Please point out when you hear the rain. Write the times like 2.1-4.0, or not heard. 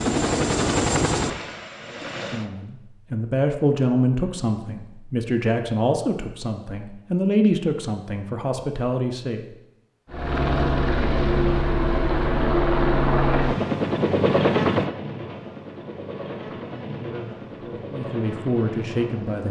not heard.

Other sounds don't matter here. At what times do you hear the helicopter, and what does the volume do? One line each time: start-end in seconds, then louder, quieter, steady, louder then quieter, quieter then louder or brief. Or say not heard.
0.0-2.5 brief
10.1-19.4 quieter.